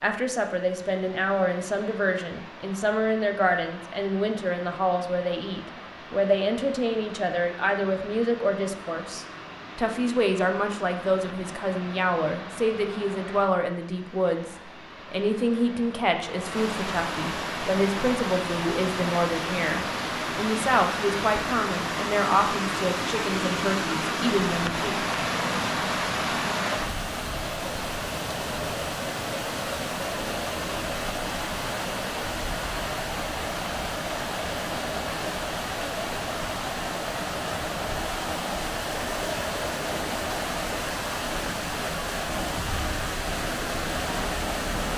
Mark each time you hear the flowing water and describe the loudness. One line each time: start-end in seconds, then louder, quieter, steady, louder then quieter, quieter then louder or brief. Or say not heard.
0.0-44.9 louder.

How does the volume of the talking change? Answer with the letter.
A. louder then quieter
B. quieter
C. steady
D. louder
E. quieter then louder
C.